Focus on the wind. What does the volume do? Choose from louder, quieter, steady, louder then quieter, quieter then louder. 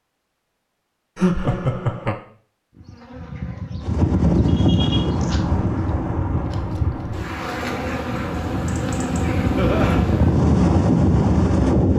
quieter then louder.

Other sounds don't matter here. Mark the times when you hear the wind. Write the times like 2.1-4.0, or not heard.
3.8-11.9.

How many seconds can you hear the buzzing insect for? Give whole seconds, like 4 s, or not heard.
8 s.